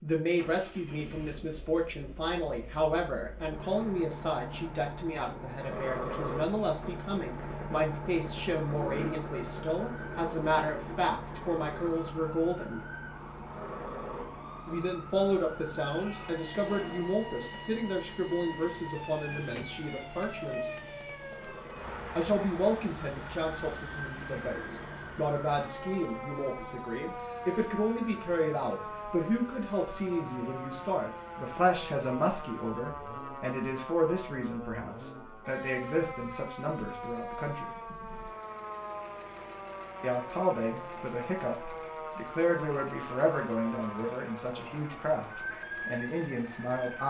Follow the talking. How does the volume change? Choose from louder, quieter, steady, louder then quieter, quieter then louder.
steady.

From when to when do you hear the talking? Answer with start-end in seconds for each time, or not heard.
0.0-12.8, 14.7-20.6, 22.1-37.7, 40.0-47.0.